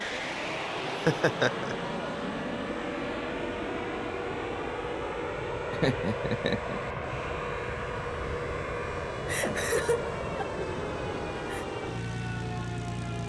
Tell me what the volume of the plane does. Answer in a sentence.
The loudness of the plane stays about the same.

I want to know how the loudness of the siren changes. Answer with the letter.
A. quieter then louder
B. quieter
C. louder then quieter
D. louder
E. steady
E.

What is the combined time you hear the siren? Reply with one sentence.
The siren can be heard for 13 seconds in total.